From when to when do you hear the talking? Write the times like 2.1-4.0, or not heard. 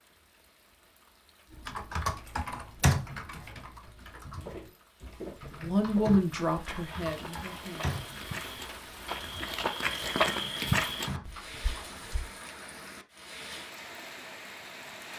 5.4-8.0.